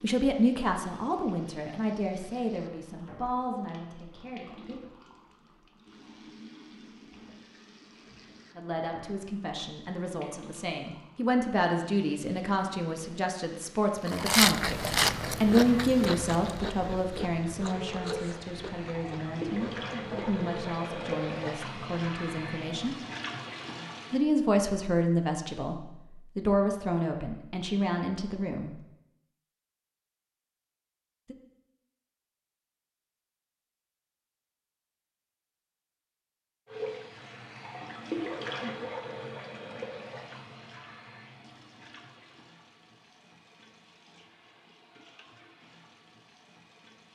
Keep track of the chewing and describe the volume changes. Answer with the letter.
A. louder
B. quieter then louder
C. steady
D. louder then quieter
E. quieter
E.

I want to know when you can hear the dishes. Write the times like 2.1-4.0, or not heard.
not heard.